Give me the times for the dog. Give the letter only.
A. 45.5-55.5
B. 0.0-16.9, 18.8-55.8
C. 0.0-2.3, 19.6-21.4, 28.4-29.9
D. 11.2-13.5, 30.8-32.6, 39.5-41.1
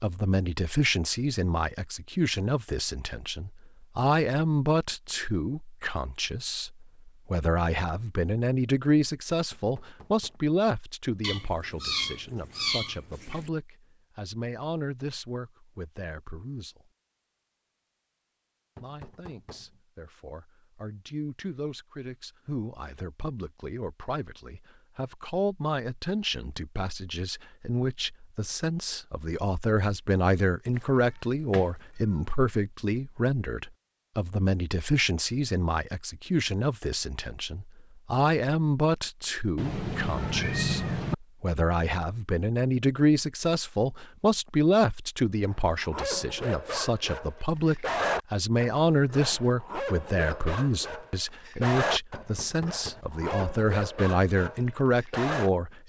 A.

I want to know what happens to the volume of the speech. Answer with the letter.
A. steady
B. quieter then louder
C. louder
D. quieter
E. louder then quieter
B.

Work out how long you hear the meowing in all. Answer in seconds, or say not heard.
6 s.